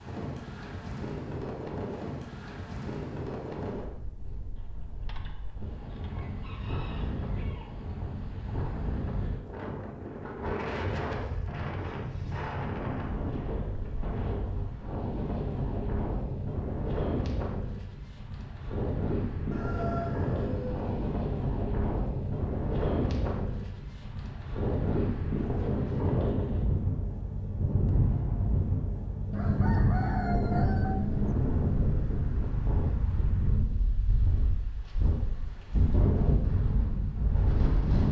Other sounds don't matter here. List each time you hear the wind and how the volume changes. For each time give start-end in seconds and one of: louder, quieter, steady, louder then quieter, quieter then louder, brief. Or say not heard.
0.0-38.0 louder.